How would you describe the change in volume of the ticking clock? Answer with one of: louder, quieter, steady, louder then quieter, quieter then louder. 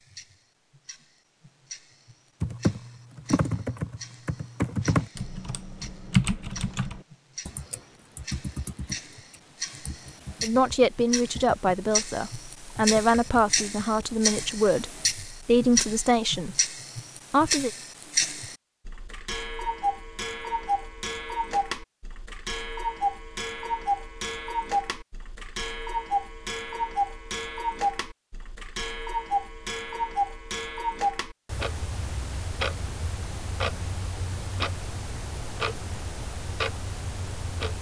louder.